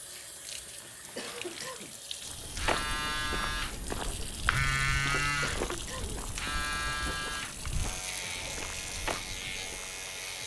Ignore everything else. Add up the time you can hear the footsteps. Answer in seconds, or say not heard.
8 s.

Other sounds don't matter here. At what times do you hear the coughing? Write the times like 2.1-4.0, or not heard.
1.1-2.0, 5.4-6.2.